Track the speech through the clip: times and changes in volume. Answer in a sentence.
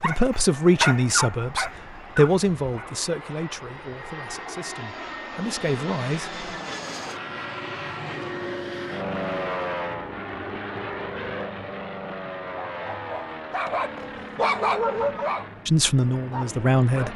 The speech can be heard from 0.0 to 6.4 s, getting quieter then louder; and briefly from 15.7 to 17.1 s.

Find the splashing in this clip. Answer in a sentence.
You can't hear the splashing here.